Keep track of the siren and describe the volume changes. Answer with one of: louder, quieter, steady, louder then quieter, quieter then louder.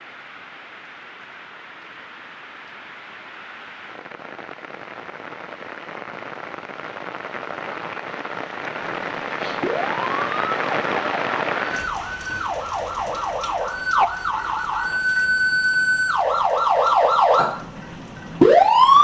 louder.